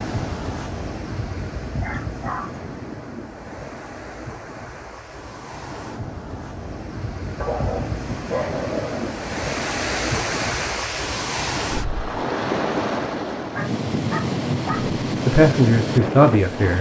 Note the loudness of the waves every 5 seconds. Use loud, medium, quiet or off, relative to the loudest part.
medium, medium, loud, loud.